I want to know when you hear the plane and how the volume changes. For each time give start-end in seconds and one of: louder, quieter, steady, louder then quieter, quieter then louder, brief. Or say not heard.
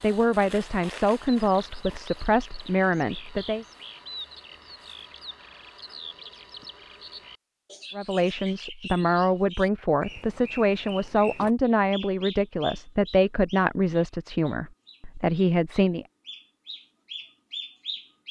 not heard.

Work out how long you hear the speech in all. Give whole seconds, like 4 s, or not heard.
12 s.